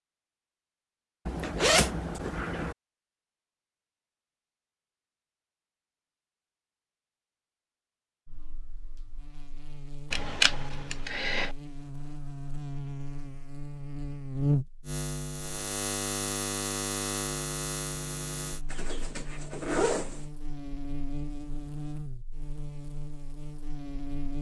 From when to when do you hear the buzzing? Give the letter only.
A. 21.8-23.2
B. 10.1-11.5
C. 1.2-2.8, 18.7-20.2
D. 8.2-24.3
D.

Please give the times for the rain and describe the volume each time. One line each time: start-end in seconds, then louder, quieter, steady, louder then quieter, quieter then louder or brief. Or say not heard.
not heard.